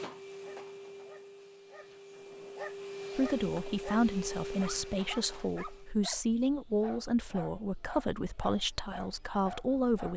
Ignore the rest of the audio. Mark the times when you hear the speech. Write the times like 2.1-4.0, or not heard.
3.1-10.1.